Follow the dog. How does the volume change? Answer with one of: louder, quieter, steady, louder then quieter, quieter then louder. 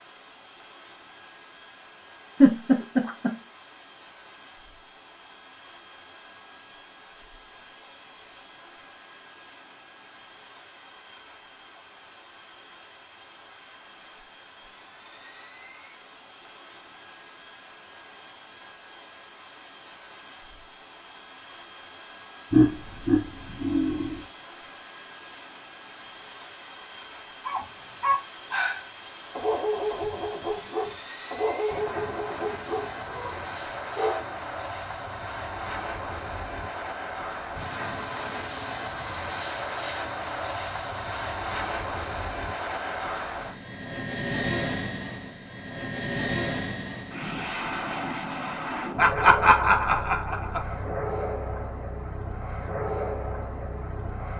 quieter.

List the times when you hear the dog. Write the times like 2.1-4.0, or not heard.
27.4-34.3.